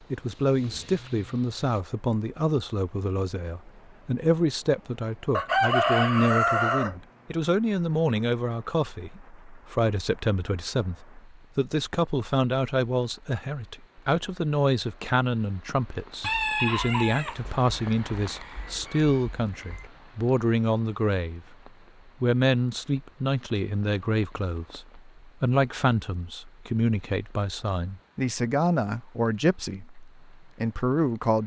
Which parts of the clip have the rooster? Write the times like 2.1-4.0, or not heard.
5.3-7.0, 16.2-19.9.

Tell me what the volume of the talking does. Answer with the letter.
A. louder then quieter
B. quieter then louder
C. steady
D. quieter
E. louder
C.